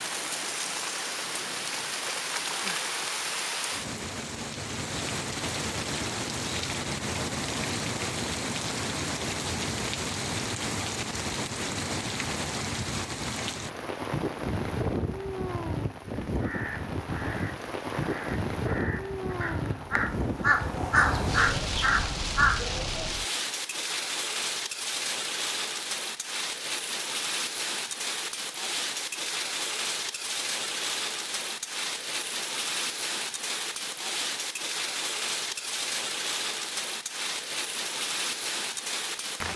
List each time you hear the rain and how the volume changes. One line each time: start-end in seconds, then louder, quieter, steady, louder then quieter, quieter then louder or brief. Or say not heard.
0.0-39.5 steady.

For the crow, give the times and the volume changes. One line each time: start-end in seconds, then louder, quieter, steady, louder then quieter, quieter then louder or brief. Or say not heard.
16.4-23.1 louder.